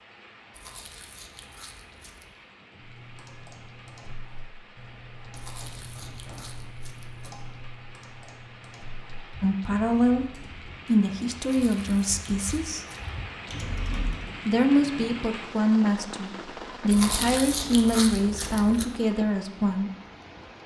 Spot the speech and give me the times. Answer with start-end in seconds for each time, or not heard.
9.4-12.8, 14.4-19.9.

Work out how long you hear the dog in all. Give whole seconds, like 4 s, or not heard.
not heard.